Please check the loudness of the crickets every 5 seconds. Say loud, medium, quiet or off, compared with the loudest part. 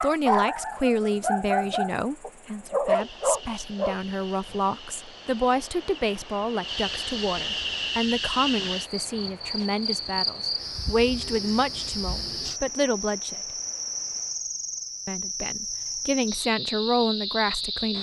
quiet, loud, loud, loud.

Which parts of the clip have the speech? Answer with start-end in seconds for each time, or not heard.
0.0-13.4, 15.1-17.9.